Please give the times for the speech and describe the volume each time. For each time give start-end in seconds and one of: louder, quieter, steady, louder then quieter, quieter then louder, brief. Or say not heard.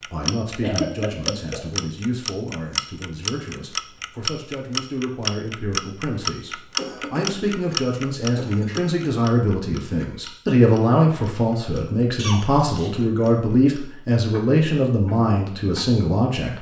0.0-16.5 louder.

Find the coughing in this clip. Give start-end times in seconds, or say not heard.
0.6-1.6, 6.8-9.0, 12.2-13.0.